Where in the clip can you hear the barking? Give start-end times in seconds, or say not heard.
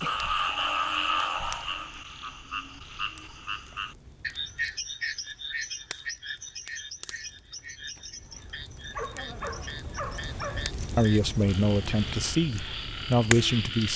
8.9-10.7.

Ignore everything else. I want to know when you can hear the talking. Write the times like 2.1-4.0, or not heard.
10.9-13.9.